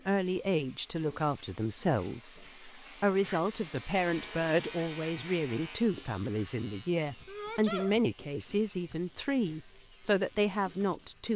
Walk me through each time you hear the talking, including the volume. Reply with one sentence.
The talking can be heard from 0.1 to 11.3 s, at a steady volume.